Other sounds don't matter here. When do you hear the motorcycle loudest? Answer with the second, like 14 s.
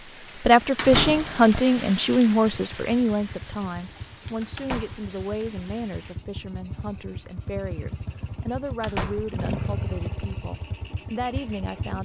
10 s.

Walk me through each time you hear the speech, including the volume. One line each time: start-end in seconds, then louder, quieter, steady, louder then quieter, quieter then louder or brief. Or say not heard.
0.4-12.0 quieter.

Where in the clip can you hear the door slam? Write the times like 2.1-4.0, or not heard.
0.8-1.6, 4.5-5.1, 8.8-9.3.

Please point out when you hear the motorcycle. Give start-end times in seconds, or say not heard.
2.4-12.0.